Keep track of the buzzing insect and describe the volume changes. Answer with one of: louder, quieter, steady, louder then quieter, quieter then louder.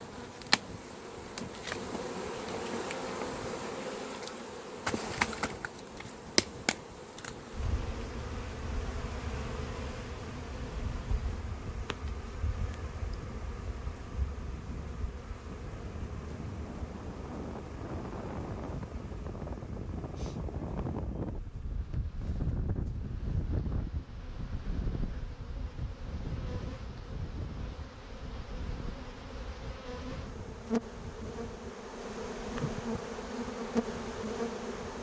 quieter then louder.